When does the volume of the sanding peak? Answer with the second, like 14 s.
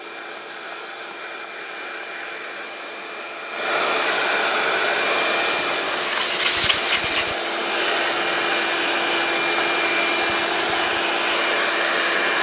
7 s.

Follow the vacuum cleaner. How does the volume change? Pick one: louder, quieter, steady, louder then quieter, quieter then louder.
louder.